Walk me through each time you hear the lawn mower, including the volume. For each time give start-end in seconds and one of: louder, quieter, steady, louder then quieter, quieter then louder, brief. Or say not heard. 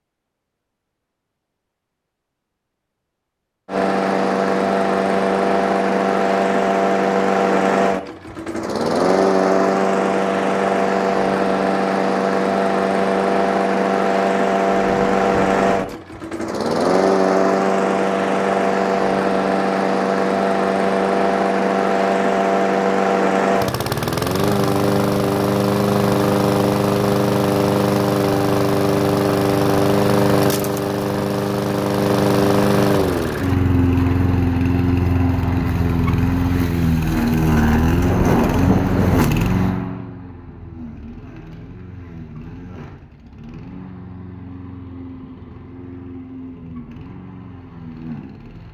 3.6-48.6 quieter.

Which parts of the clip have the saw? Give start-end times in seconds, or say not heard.
not heard.